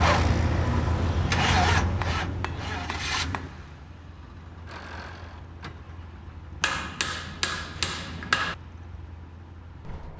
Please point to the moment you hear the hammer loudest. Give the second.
8 s.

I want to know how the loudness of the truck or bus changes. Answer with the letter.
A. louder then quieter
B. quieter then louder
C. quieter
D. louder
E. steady
C.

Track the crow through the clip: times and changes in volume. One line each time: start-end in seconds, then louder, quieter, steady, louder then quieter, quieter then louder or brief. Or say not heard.
not heard.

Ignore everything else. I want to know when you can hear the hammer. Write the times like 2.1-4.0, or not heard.
1.9-3.5, 6.6-8.6.